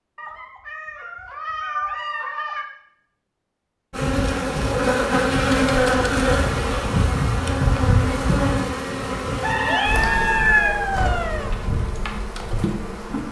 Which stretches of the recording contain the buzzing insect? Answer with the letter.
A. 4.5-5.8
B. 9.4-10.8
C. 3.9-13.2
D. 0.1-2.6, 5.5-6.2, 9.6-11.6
C.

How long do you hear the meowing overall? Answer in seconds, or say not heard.
5 s.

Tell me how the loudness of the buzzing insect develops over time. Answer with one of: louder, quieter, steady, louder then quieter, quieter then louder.
quieter.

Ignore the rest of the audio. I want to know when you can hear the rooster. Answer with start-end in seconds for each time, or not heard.
9.4-10.8.